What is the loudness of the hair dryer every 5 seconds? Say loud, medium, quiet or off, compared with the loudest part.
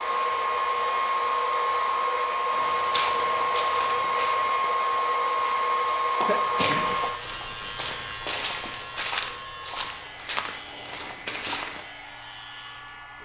loud, loud, quiet.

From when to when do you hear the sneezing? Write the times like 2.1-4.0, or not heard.
6.2-7.0.